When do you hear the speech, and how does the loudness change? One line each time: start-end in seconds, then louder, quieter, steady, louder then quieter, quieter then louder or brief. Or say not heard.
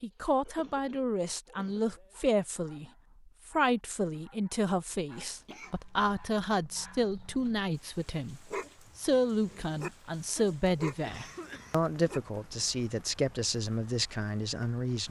0.0-15.0 steady.